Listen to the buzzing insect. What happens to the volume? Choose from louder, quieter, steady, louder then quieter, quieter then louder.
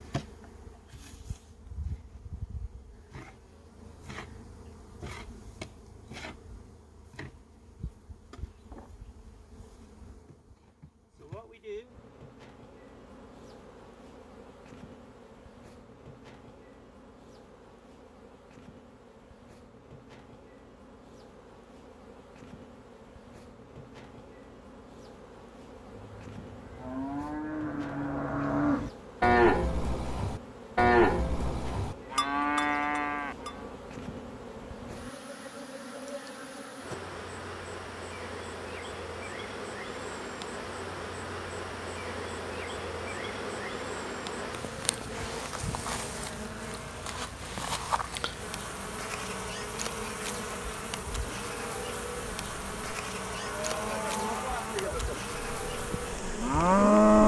louder.